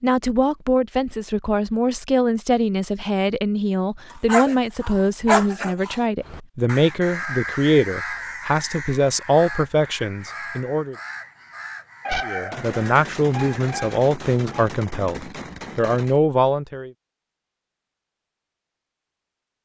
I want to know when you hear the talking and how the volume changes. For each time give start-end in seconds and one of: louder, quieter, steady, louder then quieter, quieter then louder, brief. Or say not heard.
0.0-10.9 steady
12.2-16.9 quieter then louder.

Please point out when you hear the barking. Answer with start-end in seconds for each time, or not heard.
4.2-6.0, 12.1-14.7.